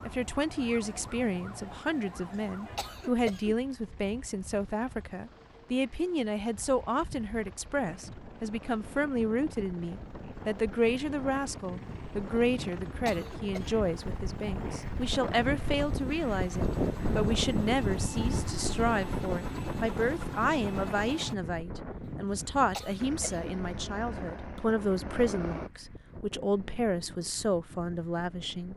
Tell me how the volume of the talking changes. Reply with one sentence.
The loudness of the talking stays about the same.